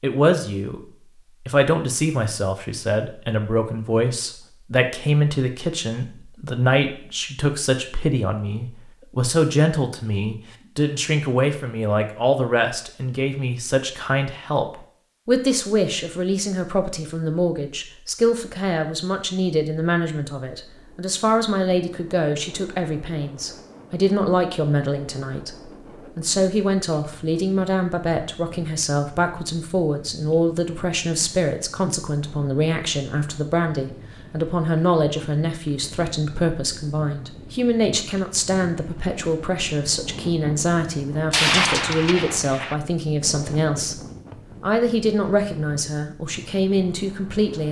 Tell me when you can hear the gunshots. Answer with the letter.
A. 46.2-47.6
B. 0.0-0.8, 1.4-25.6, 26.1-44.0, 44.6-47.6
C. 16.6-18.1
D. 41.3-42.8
D.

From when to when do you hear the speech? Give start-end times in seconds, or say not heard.
0.0-0.8, 1.4-25.6, 26.1-44.0, 44.6-47.6.